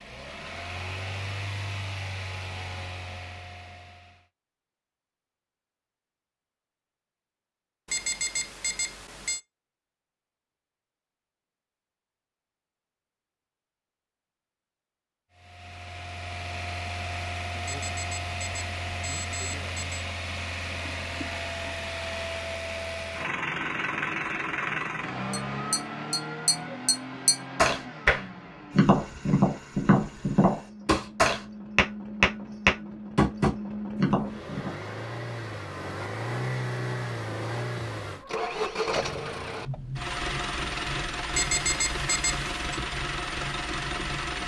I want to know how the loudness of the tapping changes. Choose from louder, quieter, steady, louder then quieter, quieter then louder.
louder.